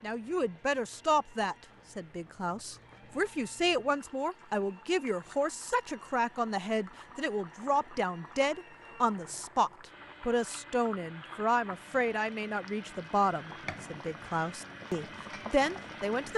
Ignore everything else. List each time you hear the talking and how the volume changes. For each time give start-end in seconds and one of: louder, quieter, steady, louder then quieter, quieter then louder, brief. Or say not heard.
0.0-16.3 steady.